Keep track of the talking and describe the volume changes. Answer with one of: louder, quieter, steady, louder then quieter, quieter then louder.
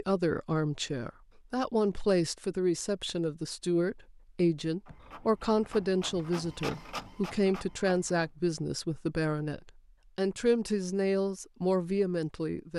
steady.